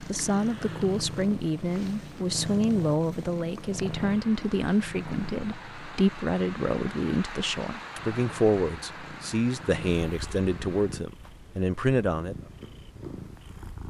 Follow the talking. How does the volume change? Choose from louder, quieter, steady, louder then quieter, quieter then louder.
steady.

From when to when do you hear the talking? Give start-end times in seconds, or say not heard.
0.0-12.3.